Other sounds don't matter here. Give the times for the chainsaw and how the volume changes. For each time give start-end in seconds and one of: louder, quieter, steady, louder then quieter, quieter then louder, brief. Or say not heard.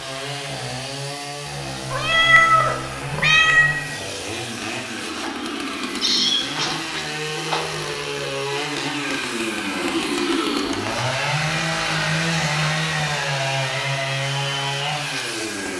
0.0-15.7 louder.